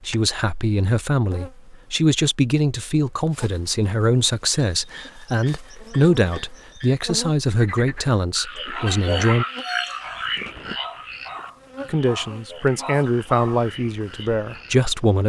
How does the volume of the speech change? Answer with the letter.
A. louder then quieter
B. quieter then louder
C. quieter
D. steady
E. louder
D.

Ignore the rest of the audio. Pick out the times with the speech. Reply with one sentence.
You can hear the speech from 0.0 to 9.4 s and from 11.8 to 15.2 s.